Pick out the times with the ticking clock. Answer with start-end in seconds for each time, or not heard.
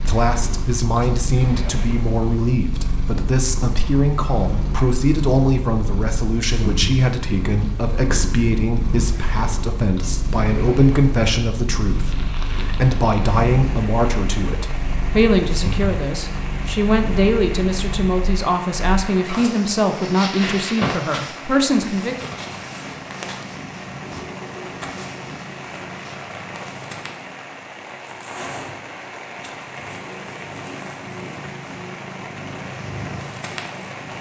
not heard.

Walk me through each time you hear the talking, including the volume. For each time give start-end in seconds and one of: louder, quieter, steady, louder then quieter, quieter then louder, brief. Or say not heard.
0.0-22.2 steady.